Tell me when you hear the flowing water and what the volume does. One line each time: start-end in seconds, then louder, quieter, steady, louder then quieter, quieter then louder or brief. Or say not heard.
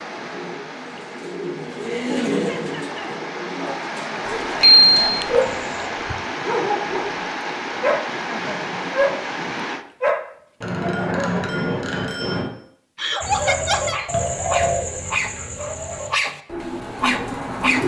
0.0-9.8 louder.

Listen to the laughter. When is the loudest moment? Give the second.
13 s.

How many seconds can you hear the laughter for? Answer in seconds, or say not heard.
3 s.